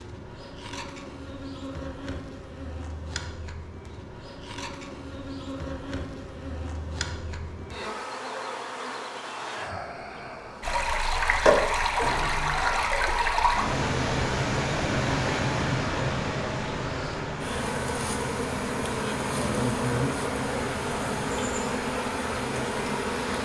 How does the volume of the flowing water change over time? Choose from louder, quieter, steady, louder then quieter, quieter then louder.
quieter.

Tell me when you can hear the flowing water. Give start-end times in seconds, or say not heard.
10.6-23.4.